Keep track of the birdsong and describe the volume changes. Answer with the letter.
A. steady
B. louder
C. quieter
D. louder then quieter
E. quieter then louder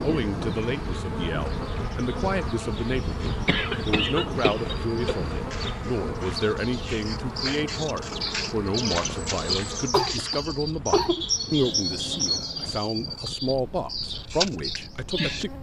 B.